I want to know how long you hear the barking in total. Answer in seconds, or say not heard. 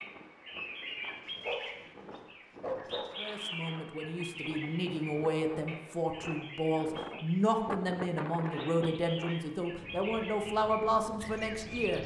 2 s.